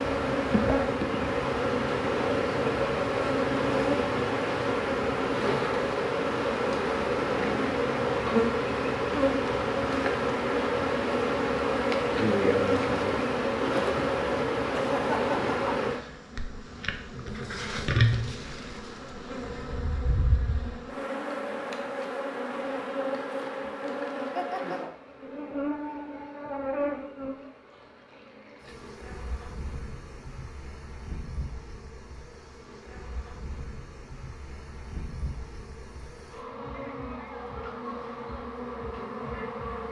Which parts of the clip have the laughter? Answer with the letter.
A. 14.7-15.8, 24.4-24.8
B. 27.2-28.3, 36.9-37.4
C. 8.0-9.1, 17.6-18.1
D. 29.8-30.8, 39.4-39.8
A.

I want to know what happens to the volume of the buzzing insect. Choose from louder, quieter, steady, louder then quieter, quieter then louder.
quieter.